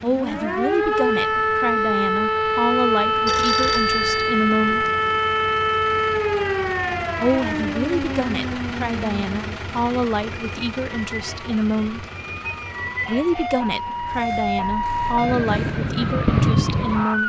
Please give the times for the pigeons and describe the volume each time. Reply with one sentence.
The pigeons can't be heard in this clip.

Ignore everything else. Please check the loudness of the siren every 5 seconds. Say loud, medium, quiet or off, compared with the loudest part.
loud, loud, medium, loud.